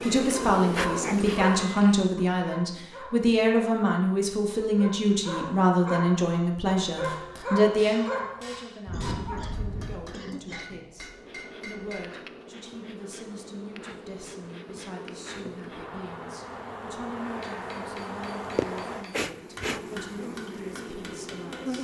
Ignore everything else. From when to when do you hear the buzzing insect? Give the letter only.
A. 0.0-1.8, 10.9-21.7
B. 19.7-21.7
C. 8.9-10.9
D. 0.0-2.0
A.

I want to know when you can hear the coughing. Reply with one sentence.
The coughing can be heard from 8.9 to 10.9 s.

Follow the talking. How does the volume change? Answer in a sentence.
The volume of the talking goes down.